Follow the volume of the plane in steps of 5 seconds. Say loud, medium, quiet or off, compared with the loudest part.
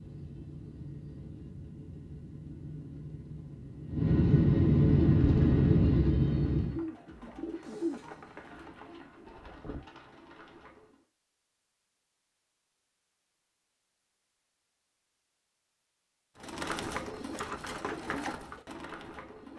medium, loud, off, off.